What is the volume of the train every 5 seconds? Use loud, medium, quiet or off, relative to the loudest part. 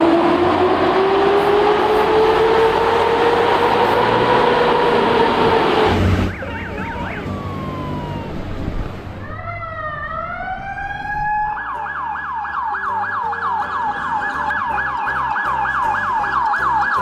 loud, medium, off, off.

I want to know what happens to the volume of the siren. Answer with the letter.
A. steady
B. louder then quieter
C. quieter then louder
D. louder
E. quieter
D.